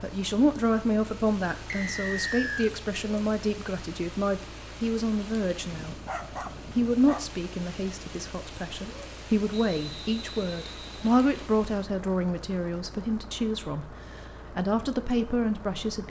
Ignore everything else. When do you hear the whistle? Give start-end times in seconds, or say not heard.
1.6-2.7, 9.5-11.5.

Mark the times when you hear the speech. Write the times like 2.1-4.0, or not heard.
0.0-6.0, 6.8-16.0.